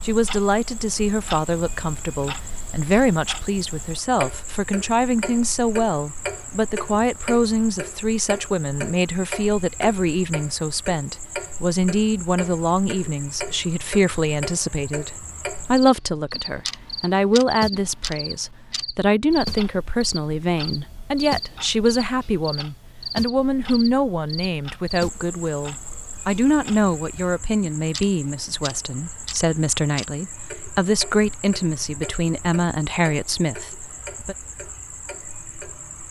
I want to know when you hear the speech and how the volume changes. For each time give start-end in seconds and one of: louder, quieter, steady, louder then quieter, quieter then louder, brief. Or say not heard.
0.1-34.4 steady.